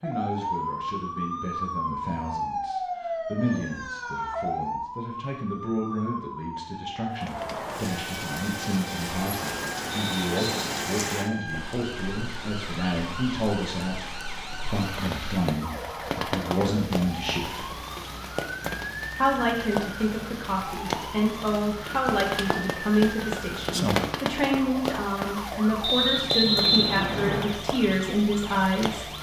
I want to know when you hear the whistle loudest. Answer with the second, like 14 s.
27 s.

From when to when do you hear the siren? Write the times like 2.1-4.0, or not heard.
0.0-29.1.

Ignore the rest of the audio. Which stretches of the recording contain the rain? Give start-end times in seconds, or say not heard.
7.1-29.1.